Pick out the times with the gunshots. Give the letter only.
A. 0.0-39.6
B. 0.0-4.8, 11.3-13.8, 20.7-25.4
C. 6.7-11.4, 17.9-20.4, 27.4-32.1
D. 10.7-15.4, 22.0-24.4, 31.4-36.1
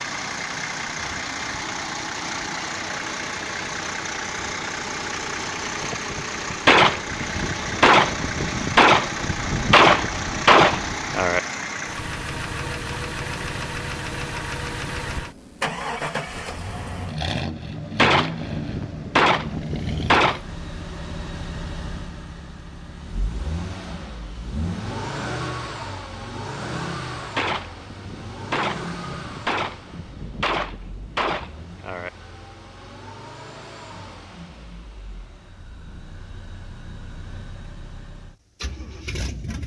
C.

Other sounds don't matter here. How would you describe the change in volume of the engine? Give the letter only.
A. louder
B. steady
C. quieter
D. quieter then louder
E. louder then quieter
C.